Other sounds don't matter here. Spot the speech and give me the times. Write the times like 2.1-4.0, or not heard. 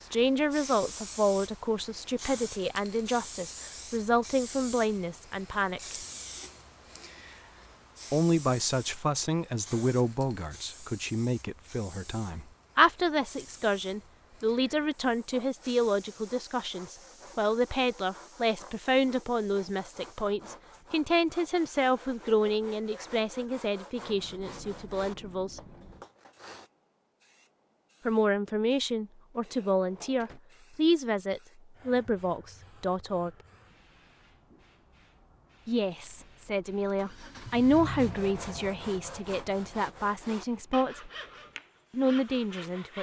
0.0-6.0, 8.1-25.6, 28.1-33.3, 35.6-41.1, 41.9-42.9.